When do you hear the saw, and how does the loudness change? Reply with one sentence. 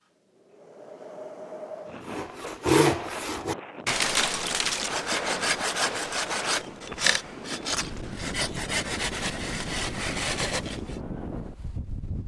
You can hear the saw from 2.0 to 11.0 s, getting quieter.